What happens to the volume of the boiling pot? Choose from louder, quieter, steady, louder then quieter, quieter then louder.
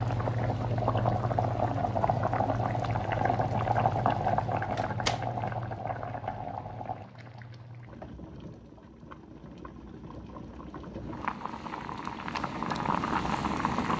quieter then louder.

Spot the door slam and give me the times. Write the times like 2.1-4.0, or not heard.
4.7-5.5.